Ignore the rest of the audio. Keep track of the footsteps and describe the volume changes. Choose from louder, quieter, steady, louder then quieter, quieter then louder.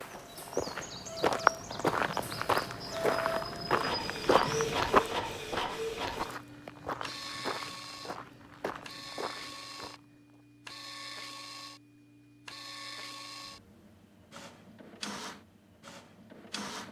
quieter.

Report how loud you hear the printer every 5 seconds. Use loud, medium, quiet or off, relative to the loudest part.
loud, loud, medium, medium.